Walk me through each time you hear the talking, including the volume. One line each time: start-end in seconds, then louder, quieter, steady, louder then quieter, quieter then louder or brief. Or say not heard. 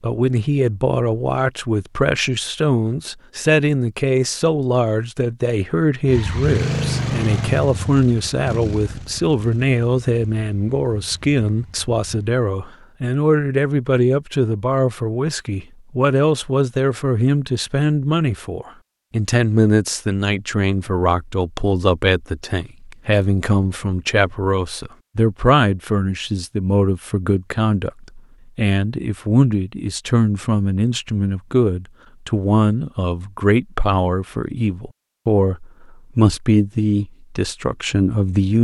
0.0-38.5 steady.